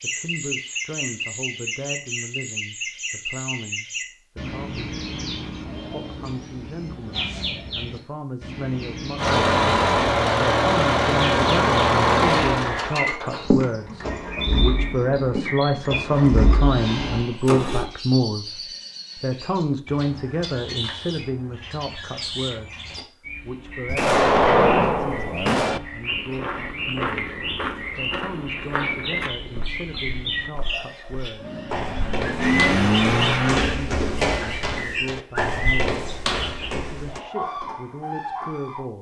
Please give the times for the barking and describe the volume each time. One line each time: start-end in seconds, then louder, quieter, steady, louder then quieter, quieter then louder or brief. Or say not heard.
not heard.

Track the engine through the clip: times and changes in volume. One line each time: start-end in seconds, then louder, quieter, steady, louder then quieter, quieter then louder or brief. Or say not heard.
9.2-17.9 quieter
31.4-33.6 brief.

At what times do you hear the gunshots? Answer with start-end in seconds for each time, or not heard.
23.9-25.8.